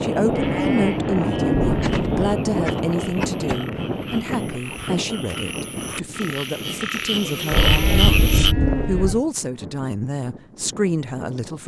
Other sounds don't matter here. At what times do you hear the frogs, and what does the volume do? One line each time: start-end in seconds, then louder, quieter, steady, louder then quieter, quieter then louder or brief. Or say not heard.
0.0-8.6 louder.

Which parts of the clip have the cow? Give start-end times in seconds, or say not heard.
0.3-2.4, 7.5-9.2.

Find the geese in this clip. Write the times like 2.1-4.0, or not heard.
1.6-3.5, 7.5-9.2.